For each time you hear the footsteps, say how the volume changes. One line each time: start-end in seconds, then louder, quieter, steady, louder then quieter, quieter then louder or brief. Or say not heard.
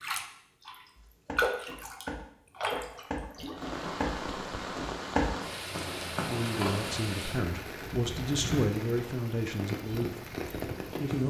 0.9-7.1 louder then quieter.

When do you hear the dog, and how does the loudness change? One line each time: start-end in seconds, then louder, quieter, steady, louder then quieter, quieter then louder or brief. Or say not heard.
not heard.